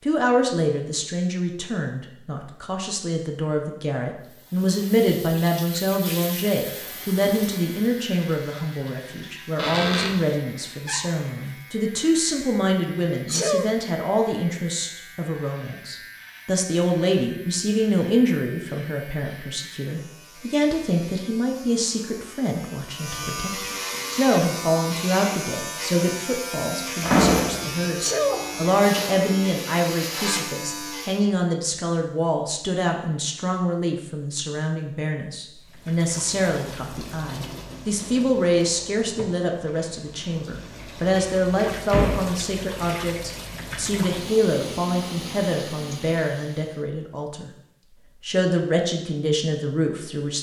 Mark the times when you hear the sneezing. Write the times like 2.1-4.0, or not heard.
13.2-13.7, 27.9-28.4.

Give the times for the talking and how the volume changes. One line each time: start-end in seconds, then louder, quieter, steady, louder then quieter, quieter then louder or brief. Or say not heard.
0.0-47.5 steady
48.2-50.3 brief.